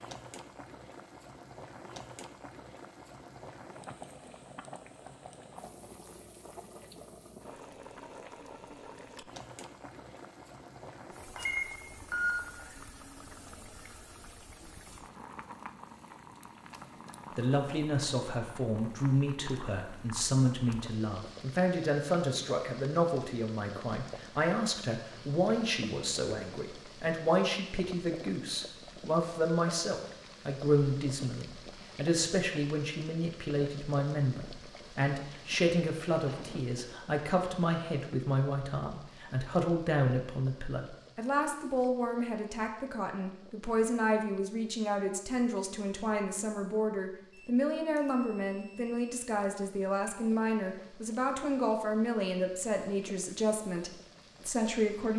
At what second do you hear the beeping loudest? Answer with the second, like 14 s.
12 s.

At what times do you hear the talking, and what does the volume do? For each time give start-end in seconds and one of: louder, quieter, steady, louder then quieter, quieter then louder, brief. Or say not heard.
17.4-55.1 steady.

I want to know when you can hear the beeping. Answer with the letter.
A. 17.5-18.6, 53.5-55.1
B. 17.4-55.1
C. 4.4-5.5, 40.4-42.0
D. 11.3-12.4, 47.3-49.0
D.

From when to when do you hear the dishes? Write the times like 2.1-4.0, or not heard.
not heard.